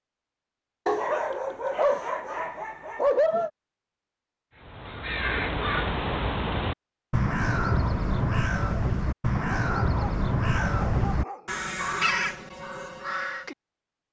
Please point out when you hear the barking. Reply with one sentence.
The barking can be heard from 0.8 to 3.5 s and from 9.3 to 11.6 s.